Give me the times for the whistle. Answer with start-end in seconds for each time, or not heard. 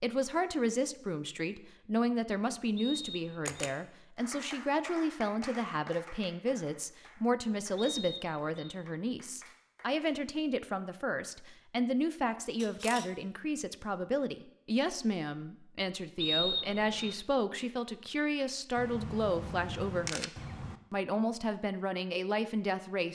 2.8-3.5, 7.8-8.8, 16.2-17.1.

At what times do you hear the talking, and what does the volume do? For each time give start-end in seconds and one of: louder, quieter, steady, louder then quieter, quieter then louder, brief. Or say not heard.
0.0-20.3 steady
20.9-23.1 brief.